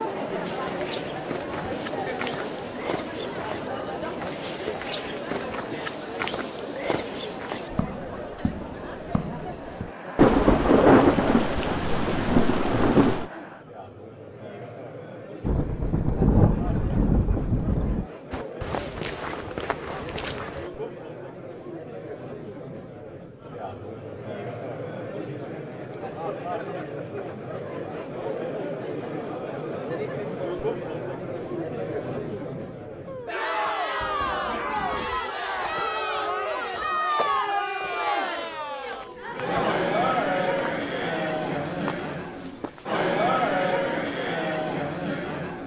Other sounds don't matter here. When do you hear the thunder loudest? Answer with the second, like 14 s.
11 s.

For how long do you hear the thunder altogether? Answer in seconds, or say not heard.
8 s.